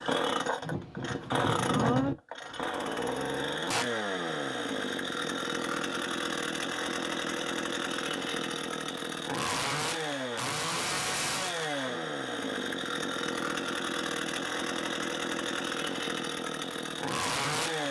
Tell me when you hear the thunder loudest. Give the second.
2 s.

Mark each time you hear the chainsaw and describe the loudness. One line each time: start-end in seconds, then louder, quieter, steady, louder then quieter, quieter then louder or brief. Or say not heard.
0.0-17.8 steady.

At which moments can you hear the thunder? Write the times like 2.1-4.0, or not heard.
0.6-2.1.